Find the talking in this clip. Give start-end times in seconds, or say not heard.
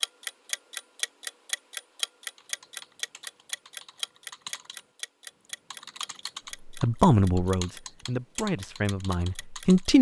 6.7-9.9.